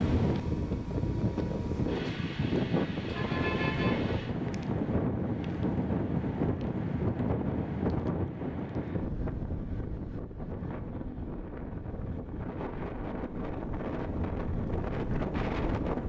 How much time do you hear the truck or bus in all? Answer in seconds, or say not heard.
4 s.